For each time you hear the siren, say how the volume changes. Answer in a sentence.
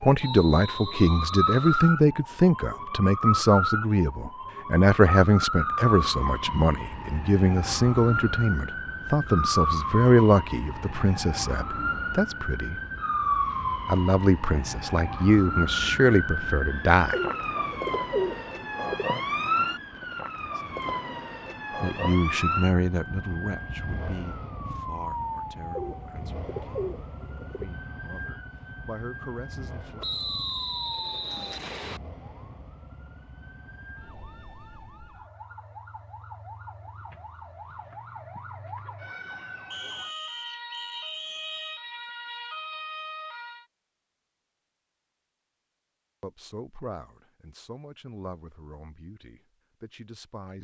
The siren can be heard from 0.0 to 43.6 s, getting quieter.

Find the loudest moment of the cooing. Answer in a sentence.
The volume of the cooing peaks at 18 seconds.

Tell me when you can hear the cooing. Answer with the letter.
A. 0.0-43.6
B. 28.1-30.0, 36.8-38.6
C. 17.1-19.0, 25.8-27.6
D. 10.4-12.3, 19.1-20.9
C.